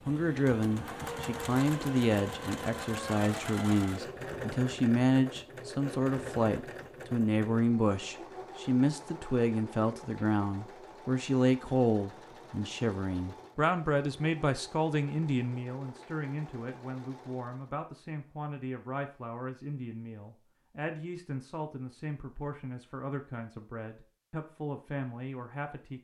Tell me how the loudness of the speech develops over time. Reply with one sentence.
The loudness of the speech goes down.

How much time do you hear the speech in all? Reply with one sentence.
The speech can be heard for 26 seconds in total.